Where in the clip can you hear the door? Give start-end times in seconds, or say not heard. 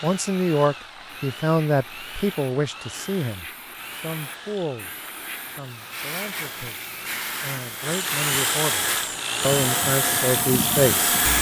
not heard.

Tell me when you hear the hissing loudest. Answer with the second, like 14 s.
11 s.